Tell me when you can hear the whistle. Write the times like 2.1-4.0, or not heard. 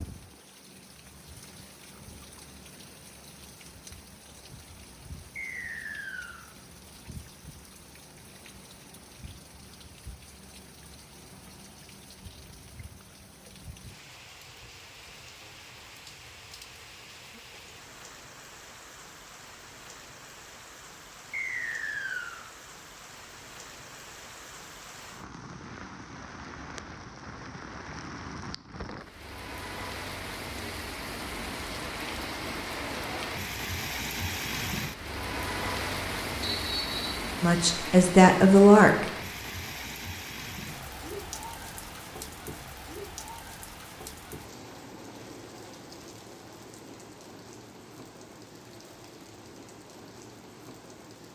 5.3-6.5, 21.3-22.4, 36.4-37.2.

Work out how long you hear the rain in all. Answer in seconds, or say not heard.
51 s.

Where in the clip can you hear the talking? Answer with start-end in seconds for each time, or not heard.
37.4-39.0.